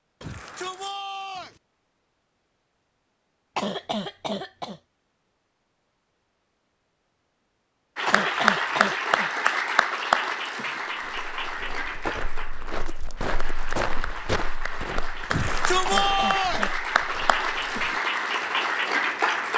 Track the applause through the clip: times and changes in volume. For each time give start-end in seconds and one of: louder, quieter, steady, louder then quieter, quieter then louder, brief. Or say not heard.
8.0-19.5 quieter then louder.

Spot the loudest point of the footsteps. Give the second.
14 s.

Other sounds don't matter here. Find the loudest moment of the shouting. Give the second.
16 s.